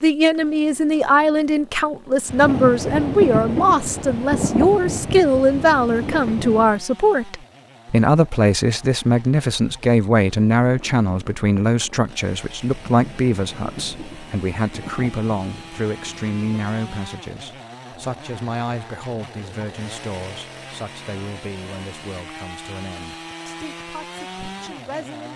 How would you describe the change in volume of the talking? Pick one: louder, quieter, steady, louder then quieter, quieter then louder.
quieter.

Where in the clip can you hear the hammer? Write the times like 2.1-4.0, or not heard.
not heard.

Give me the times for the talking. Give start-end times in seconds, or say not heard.
0.0-25.3.